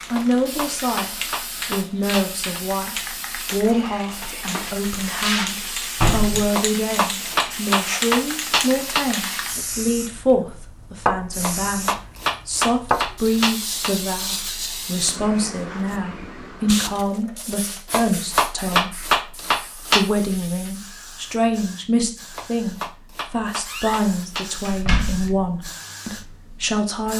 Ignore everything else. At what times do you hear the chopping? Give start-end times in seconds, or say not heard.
0.1-2.6, 6.5-9.1, 11.4-13.9, 17.9-20.1, 22.3-24.5.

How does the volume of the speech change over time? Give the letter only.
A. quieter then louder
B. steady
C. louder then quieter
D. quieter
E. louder
B.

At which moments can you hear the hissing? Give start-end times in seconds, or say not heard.
0.0-27.1.